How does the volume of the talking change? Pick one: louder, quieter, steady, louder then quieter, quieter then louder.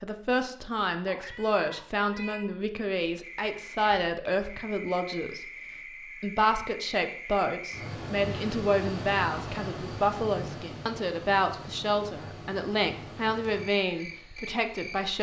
steady.